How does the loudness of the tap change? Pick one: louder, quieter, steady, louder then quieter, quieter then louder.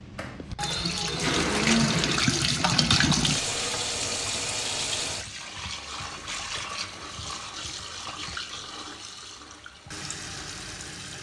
quieter.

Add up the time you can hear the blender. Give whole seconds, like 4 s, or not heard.
2 s.